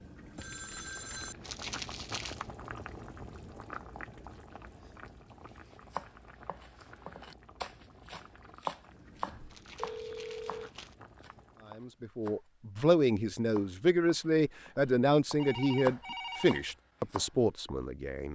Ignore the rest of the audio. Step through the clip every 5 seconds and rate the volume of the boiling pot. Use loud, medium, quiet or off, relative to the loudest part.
loud, medium, medium, off.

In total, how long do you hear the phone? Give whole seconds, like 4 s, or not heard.
4 s.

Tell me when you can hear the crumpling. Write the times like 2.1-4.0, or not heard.
1.4-2.5, 9.5-10.9.